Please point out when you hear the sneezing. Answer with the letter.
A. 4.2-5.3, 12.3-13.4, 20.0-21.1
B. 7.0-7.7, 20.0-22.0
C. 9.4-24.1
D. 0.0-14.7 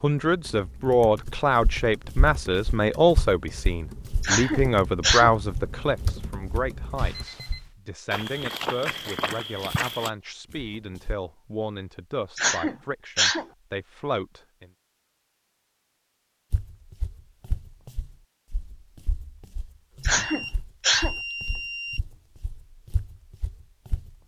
A.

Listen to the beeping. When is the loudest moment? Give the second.
21 s.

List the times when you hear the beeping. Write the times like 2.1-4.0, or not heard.
7.0-7.7, 20.0-22.0.